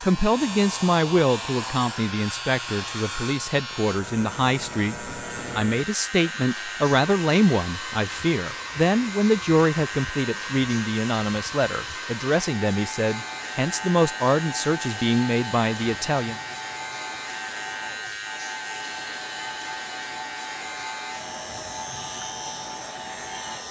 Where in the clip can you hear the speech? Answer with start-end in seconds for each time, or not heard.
0.0-16.4.